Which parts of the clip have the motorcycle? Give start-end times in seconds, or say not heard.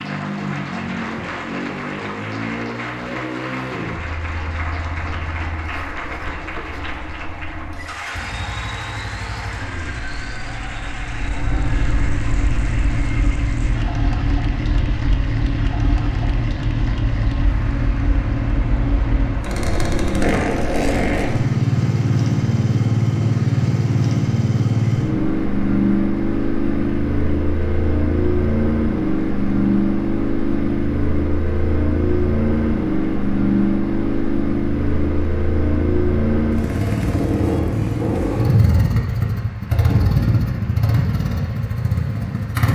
0.0-42.7.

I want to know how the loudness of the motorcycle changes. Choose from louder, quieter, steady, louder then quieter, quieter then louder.
louder.